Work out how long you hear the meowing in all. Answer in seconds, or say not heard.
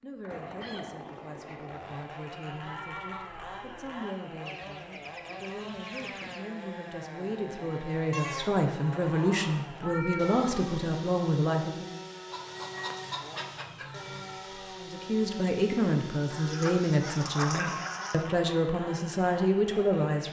4 s.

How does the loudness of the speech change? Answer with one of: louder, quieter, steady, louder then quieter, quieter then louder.
louder.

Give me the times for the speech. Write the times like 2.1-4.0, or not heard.
0.0-12.0, 14.8-20.2.